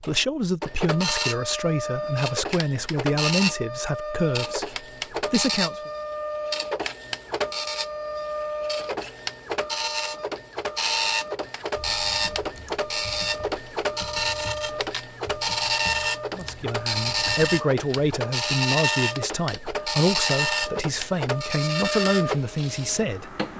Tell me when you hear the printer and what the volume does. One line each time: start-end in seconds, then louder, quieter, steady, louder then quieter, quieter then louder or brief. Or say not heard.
0.0-23.5 steady.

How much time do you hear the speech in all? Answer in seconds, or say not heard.
13 s.